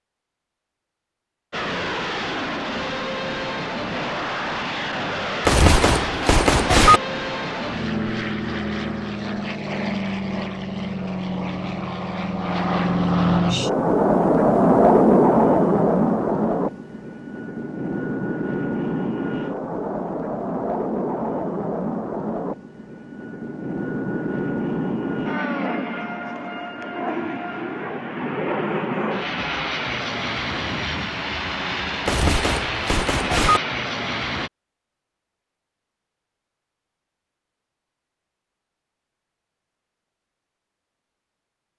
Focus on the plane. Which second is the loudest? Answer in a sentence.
The volume of the plane peaks at 15 seconds.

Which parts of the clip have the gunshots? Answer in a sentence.
You can hear the gunshots from 5.5 to 7.0 s and from 32.0 to 33.6 s.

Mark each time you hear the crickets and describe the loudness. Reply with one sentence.
The crickets can't be heard in this clip.